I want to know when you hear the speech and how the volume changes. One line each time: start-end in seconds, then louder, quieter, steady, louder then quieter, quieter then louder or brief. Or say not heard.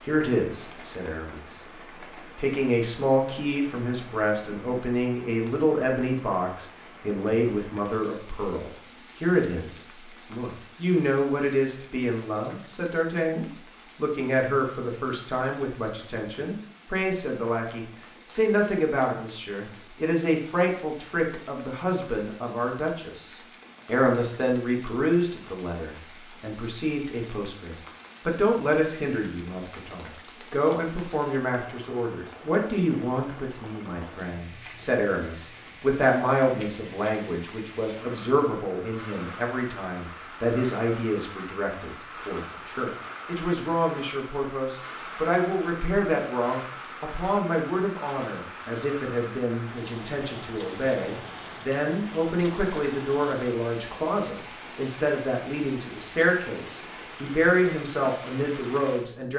0.1-1.6 brief
2.4-59.3 steady.